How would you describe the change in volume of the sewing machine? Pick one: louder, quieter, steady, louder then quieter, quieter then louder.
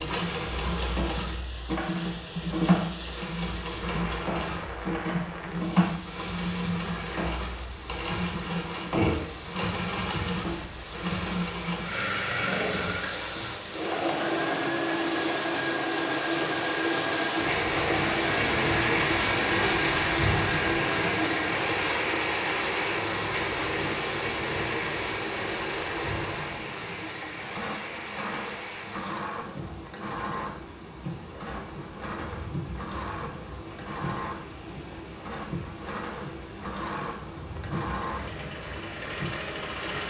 quieter.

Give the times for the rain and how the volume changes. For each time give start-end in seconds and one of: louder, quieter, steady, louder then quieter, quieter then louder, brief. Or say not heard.
0.0-40.0 louder then quieter.